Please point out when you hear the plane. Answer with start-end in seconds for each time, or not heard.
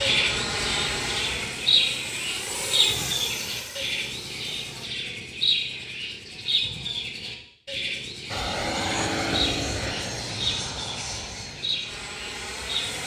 0.0-4.9, 8.3-13.0.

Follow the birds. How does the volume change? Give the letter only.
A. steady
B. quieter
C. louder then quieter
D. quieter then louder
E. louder
B.